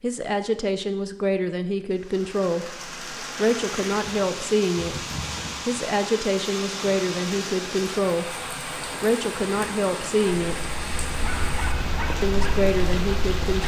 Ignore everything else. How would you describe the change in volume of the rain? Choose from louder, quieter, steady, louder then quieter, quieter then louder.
steady.